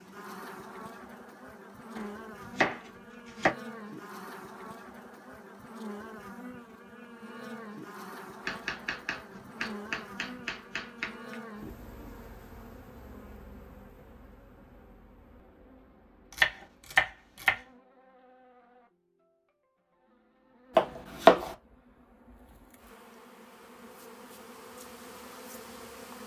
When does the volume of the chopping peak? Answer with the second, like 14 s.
21 s.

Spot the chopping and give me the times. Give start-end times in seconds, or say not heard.
1.9-3.5, 8.4-11.3, 16.3-17.6, 20.8-21.6.